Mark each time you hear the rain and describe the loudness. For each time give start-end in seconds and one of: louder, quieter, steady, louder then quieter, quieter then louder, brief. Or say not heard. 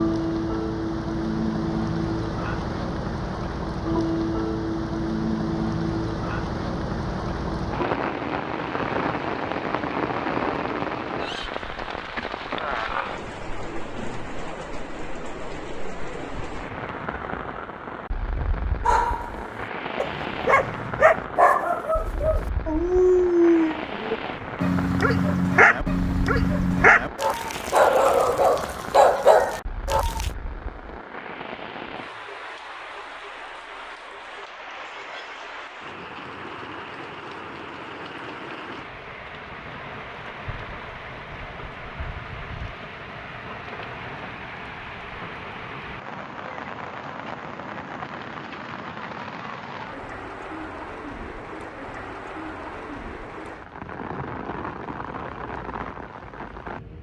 0.0-56.9 quieter.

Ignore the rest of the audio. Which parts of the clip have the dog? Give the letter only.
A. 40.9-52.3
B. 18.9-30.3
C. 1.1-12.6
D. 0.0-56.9
B.